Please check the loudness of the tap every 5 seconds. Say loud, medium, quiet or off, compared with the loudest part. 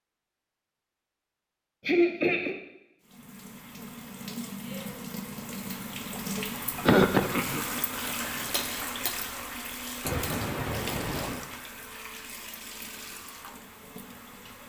medium, loud, medium.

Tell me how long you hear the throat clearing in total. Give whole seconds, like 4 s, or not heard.
3 s.